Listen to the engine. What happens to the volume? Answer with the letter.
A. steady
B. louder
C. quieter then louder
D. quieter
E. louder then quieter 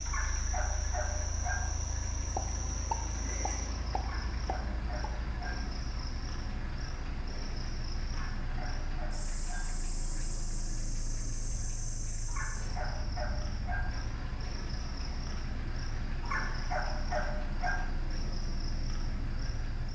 A.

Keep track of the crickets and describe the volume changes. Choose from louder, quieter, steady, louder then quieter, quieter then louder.
steady.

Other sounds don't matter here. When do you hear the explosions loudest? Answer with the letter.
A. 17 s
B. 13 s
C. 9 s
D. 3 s
D.